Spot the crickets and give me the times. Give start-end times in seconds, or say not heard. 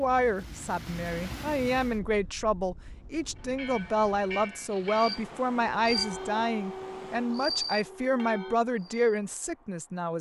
5.0-10.1.